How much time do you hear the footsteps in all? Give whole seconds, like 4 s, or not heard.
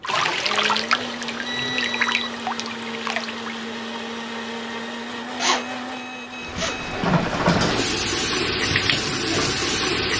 not heard.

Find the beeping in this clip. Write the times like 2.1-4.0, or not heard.
0.9-2.4, 5.4-7.0.